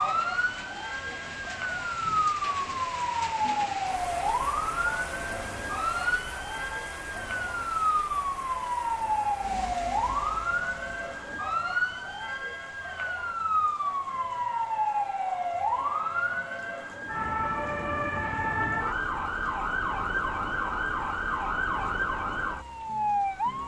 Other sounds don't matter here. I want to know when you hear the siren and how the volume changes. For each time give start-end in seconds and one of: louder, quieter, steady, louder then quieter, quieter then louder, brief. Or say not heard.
0.0-23.6 steady.